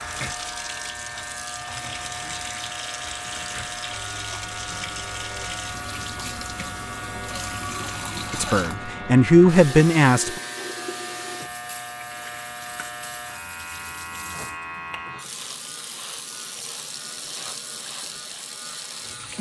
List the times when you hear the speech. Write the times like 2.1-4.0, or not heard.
8.3-10.3.